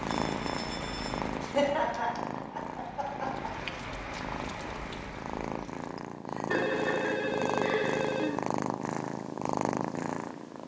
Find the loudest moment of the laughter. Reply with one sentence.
The volume of the laughter peaks at 2 seconds.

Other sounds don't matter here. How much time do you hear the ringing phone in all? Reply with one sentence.
The ringing phone can be heard for 3 seconds in total.